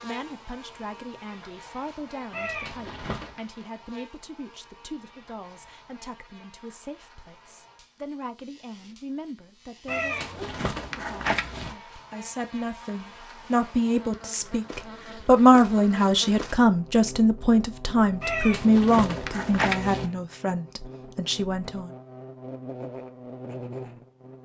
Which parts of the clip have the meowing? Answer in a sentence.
The meowing can be heard from 2.3 to 3.4 s, from 9.8 to 11.8 s and from 18.2 to 20.1 s.